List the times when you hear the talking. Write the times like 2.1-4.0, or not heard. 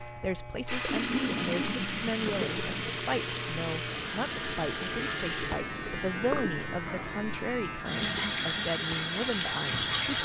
0.0-10.2.